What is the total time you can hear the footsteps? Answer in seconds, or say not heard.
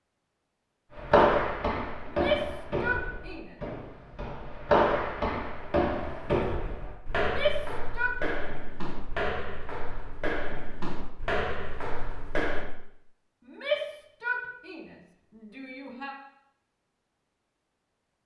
12 s.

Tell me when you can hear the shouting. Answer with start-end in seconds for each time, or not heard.
2.0-3.5, 7.2-8.2, 13.4-16.1.